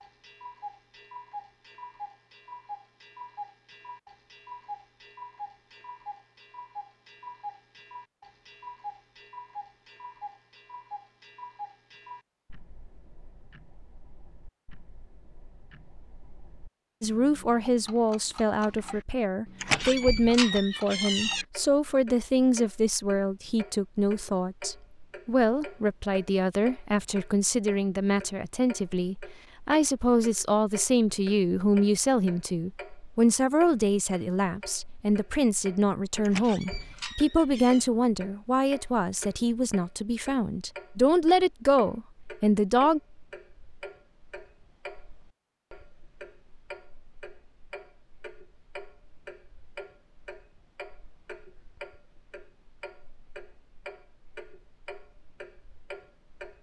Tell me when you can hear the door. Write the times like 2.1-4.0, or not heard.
19.6-21.4, 36.2-37.9.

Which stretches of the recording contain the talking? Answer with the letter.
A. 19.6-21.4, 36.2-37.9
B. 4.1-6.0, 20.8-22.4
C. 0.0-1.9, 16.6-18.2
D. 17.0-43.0
D.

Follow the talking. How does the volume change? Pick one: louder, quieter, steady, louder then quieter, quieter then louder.
steady.